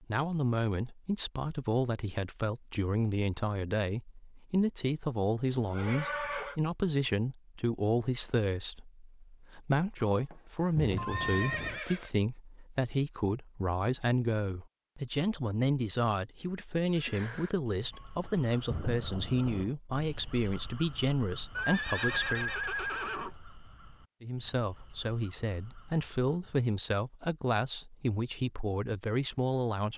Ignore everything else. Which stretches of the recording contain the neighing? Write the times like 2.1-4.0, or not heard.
5.5-6.5, 10.9-12.1, 21.6-23.4.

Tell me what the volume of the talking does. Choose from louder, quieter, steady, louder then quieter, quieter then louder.
steady.